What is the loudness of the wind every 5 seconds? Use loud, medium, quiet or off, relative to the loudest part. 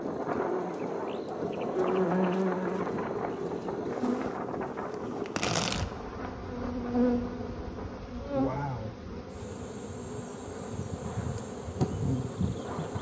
loud, medium, medium.